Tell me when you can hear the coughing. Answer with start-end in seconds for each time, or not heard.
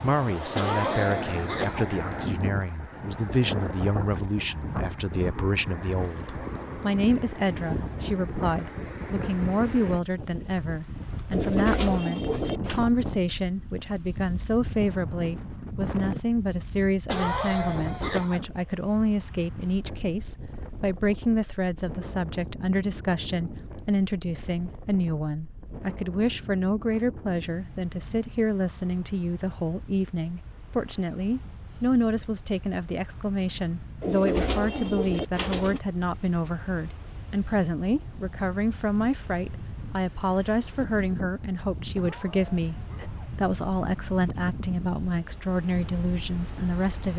0.6-1.9, 17.1-18.4, 42.0-43.2.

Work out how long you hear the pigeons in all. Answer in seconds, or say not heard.
3 s.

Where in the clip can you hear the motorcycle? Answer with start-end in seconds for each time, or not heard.
not heard.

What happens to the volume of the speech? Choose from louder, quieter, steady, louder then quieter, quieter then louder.
steady.